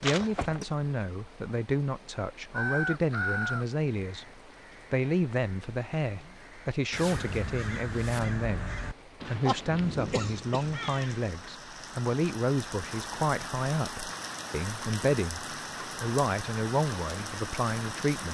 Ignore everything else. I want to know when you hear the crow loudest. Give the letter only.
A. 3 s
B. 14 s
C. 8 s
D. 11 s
A.